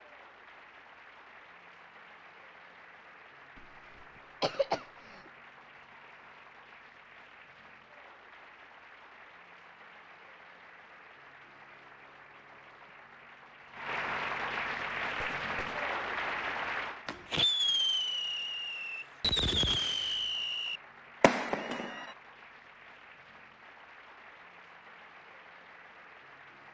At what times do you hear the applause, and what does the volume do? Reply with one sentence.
You can hear the applause from 0.0 to 26.6 s, getting louder then quieter.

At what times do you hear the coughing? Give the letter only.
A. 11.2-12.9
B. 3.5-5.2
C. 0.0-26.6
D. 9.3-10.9
B.